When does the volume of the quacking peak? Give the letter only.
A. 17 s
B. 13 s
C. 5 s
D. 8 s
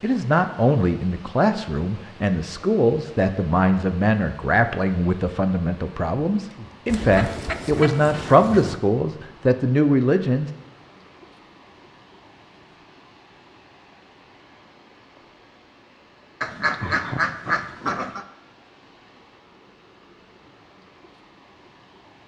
A.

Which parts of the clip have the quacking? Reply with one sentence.
You can hear the quacking from 6.8 to 8.8 s and from 16.4 to 18.2 s.